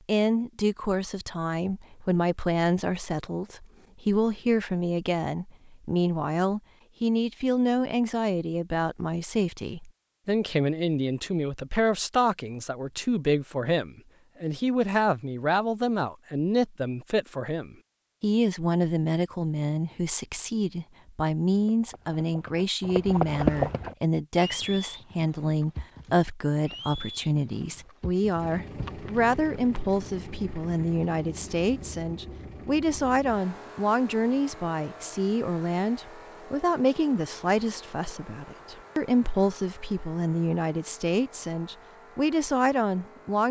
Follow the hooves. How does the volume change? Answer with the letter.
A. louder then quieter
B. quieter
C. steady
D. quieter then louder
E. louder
A.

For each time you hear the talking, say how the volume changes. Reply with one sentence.
The talking can be heard from 0.1 to 43.4 s, at a steady volume.